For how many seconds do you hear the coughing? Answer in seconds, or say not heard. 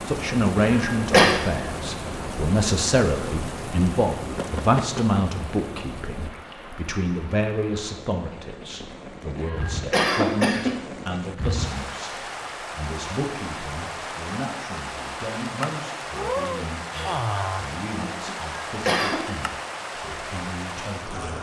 3 s.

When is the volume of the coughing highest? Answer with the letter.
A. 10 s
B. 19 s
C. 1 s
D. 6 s
C.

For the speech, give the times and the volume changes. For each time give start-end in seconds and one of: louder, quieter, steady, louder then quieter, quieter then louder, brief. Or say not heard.
0.1-21.3 quieter.